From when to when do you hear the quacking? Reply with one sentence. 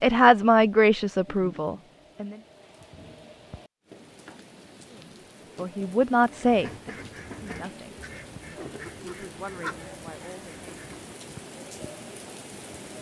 You can hear the quacking from 6.3 to 11.2 s.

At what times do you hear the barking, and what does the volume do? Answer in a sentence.
The barking can't be heard in this clip.